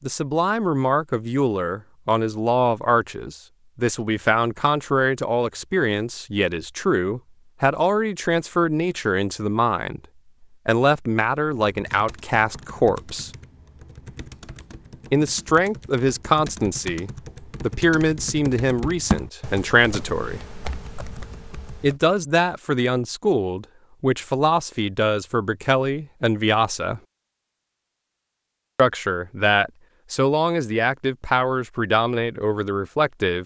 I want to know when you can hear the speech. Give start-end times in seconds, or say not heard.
0.0-10.0, 10.7-13.3, 15.1-20.4, 21.8-27.0, 28.8-33.4.